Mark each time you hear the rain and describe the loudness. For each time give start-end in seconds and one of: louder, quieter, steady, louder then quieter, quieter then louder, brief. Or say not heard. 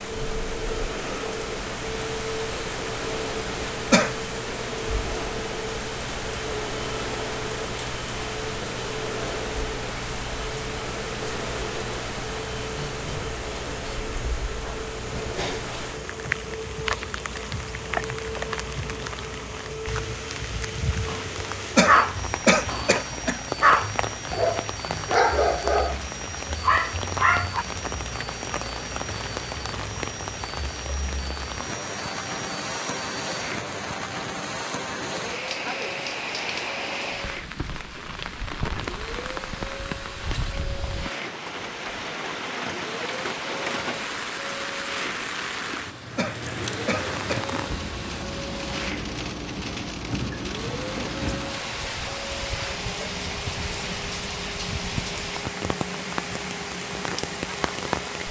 0.0-58.2 steady.